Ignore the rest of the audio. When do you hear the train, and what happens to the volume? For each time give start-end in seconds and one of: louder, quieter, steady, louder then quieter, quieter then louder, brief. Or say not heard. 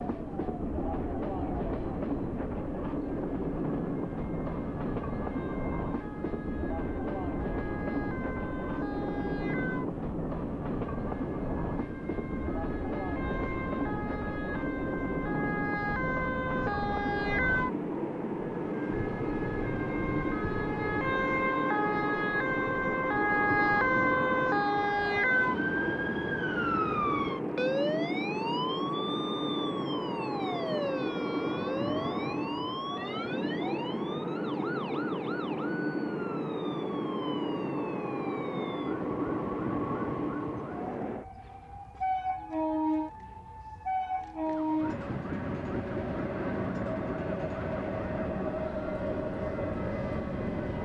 0.0-50.8 steady.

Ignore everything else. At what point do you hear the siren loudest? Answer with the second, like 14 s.
24 s.